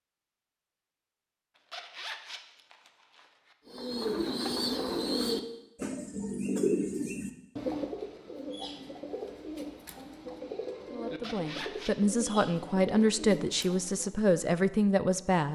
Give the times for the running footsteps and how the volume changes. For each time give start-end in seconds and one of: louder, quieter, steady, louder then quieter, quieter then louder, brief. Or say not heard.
not heard.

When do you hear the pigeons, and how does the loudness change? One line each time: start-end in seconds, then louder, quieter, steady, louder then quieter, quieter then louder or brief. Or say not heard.
3.6-14.2 quieter.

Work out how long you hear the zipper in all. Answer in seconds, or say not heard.
3 s.